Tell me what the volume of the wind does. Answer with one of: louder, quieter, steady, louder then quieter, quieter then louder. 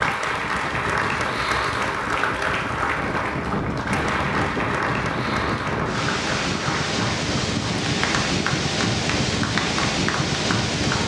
louder.